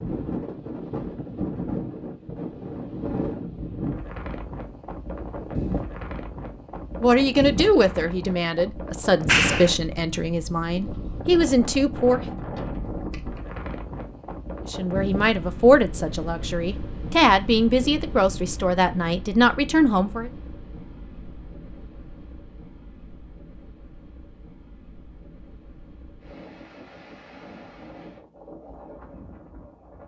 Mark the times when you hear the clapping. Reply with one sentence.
You can hear the clapping from 9.2 to 9.7 s.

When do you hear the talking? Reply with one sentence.
The talking can be heard from 7.0 to 12.2 s and from 14.7 to 20.3 s.